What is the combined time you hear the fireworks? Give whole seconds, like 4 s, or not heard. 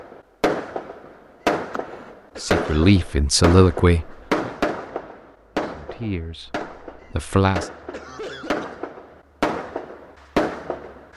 11 s.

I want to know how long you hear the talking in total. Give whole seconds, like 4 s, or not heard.
4 s.